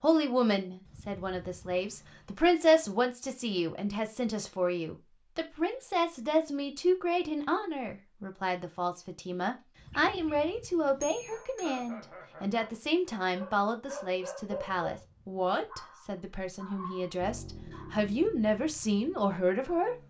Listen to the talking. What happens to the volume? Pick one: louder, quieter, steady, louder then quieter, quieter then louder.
steady.